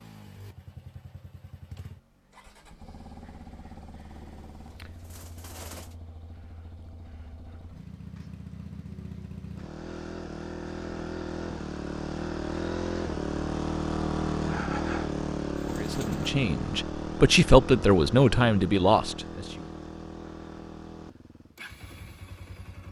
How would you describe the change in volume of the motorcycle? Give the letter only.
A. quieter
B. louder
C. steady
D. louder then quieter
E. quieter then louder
D.